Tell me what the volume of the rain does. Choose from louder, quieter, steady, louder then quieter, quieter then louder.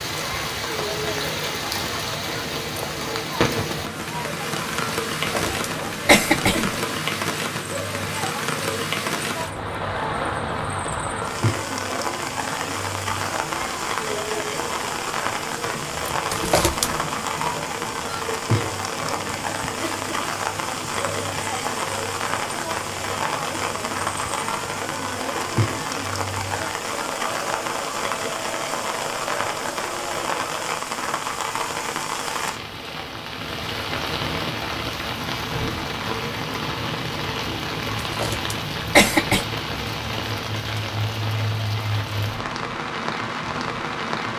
steady.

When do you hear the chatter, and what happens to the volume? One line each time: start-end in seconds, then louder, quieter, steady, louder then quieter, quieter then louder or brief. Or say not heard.
0.0-30.6 steady.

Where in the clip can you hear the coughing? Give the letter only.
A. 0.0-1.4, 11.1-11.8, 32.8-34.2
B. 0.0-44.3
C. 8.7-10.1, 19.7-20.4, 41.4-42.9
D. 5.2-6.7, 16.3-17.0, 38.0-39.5
D.